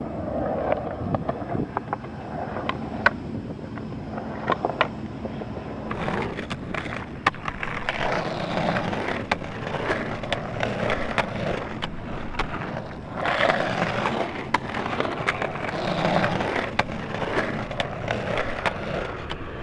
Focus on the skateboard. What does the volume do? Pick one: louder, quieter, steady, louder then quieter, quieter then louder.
steady.